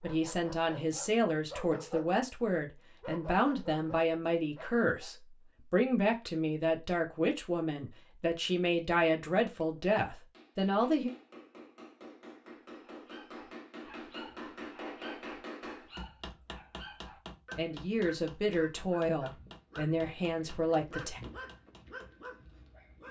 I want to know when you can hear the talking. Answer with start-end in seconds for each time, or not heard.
0.0-11.1, 17.6-21.2.